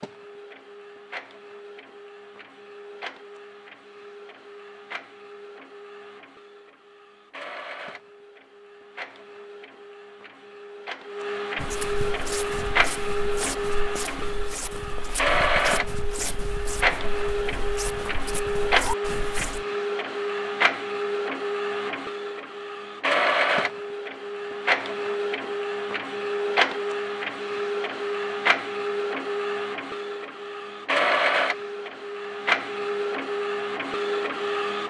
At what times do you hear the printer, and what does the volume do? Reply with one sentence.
The printer can be heard from 0.0 to 34.8 s, getting louder.